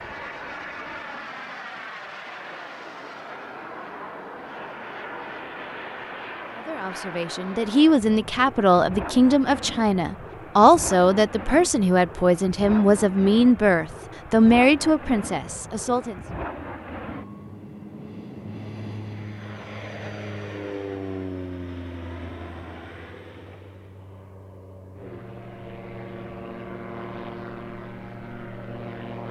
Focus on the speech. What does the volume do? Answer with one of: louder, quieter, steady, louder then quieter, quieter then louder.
steady.